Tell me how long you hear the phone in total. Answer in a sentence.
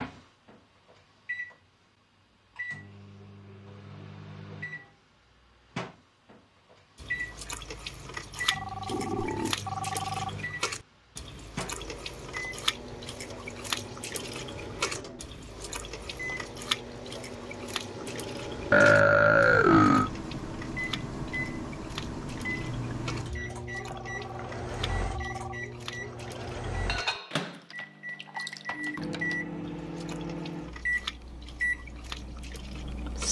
The phone can be heard for 4 seconds in total.